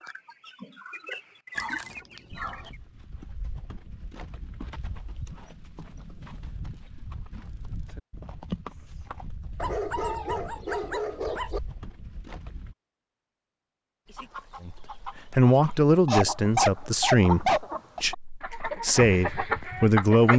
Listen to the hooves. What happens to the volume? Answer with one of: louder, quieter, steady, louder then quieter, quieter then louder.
louder then quieter.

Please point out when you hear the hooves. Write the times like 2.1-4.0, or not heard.
2.3-12.8.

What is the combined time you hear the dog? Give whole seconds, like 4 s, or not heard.
5 s.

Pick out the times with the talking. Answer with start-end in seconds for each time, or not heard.
14.6-20.3.